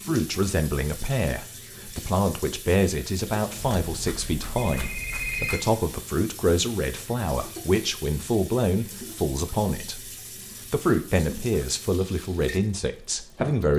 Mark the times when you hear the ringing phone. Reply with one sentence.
The ringing phone can be heard from 3.5 to 5.6 s.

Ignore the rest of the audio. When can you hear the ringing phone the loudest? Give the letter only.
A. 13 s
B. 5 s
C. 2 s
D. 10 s
B.